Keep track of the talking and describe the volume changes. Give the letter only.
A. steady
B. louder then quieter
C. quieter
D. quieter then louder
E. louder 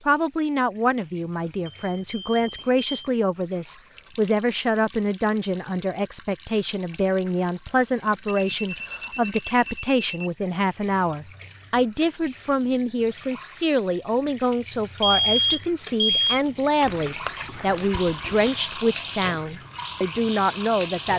A.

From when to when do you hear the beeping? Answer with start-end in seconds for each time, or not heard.
1.6-2.9, 8.2-10.3, 15.0-16.4.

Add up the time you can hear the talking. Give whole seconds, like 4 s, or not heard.
21 s.